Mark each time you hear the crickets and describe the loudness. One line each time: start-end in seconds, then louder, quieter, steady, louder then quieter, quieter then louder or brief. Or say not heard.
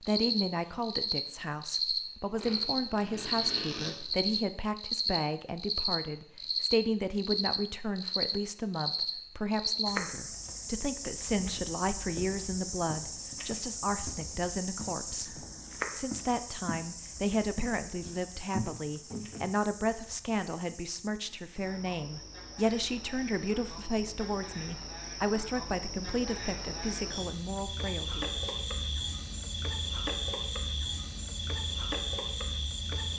0.0-33.1 quieter then louder.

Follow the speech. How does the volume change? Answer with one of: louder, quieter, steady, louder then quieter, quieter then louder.
steady.